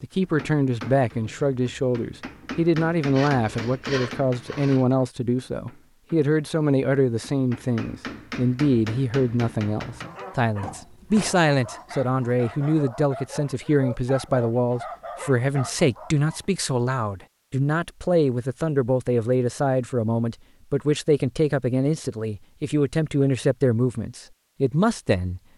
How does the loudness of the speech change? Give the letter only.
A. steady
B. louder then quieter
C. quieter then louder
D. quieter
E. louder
A.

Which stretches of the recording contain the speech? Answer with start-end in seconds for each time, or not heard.
0.0-25.4.